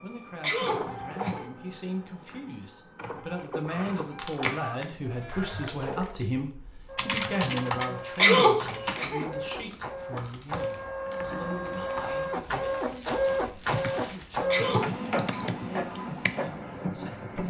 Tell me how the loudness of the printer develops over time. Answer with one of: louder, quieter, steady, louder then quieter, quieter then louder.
louder.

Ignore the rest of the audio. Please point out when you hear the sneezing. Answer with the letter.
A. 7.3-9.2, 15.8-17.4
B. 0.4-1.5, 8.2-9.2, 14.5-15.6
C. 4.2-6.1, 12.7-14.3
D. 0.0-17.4
B.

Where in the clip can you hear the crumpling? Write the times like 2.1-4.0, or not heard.
4.2-6.1, 12.7-14.3.